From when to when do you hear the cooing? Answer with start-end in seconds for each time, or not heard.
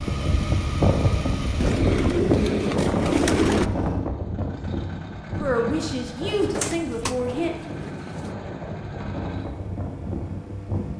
1.6-3.7, 6.2-8.3.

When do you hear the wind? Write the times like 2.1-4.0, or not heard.
0.0-10.9.